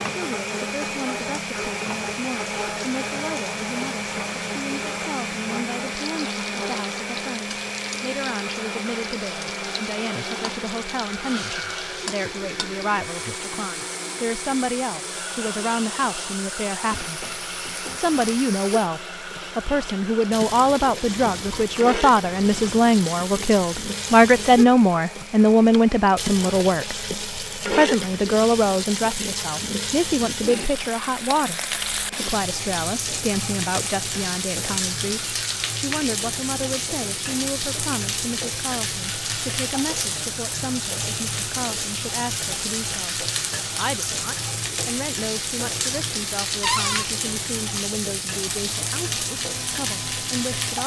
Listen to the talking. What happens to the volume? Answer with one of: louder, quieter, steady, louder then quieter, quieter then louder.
louder then quieter.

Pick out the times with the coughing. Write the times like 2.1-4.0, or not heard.
not heard.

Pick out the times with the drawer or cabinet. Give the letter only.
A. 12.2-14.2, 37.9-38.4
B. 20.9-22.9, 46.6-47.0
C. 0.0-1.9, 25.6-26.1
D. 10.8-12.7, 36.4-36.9
B.